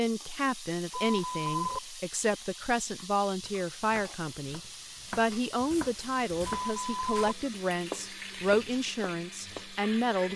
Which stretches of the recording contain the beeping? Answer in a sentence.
The beeping can be heard from 0.9 to 1.8 s and from 6.5 to 7.3 s.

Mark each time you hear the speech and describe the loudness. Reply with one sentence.
The speech can be heard from 0.0 to 10.3 s, at a steady volume.